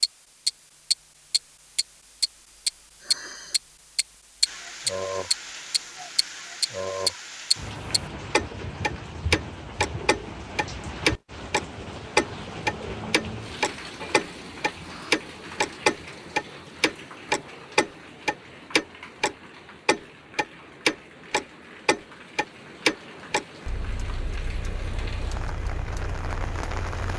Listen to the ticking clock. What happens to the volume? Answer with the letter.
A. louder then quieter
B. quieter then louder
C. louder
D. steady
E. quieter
E.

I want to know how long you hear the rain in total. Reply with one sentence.
The rain can be heard for 23 seconds in total.